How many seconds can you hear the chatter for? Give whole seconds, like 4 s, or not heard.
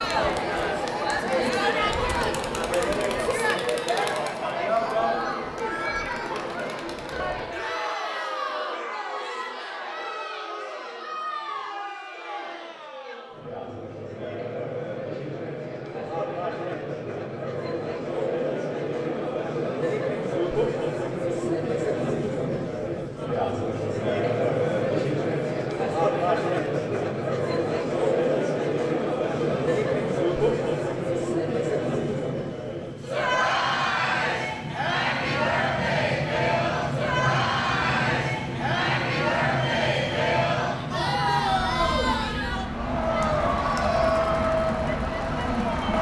46 s.